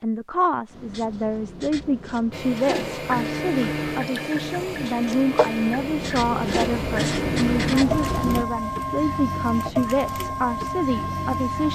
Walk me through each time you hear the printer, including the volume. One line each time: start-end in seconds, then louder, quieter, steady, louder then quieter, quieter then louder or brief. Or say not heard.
2.3-11.7 steady.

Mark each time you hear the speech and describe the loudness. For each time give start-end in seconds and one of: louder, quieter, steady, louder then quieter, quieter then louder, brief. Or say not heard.
0.0-11.7 steady.